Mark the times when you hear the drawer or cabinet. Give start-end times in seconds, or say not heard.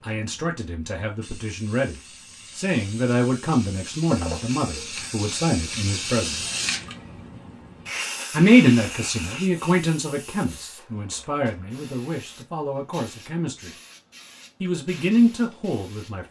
4.1-5.1.